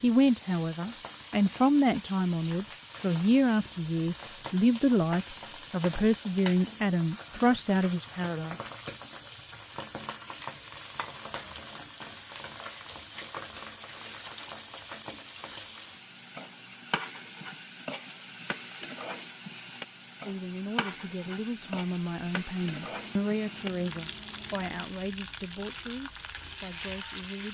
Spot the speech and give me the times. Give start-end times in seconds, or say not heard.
0.0-8.6, 20.2-27.4.